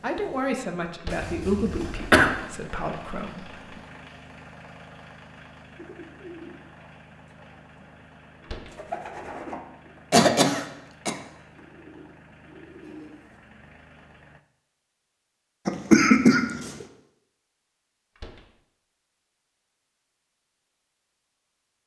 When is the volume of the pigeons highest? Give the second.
9 s.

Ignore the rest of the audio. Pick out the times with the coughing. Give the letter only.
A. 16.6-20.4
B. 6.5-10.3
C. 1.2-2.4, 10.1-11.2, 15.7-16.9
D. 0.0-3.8
C.